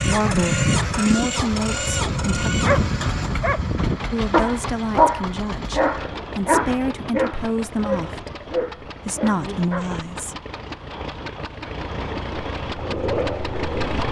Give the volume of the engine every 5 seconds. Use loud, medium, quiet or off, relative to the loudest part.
loud, medium, loud.